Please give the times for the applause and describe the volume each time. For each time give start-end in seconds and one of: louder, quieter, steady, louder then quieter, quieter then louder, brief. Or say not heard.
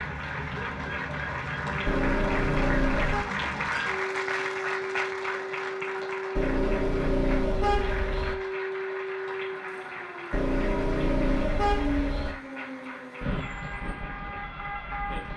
0.0-15.3 quieter.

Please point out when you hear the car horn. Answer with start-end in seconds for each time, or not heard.
1.9-3.2, 6.3-8.3, 10.3-12.3.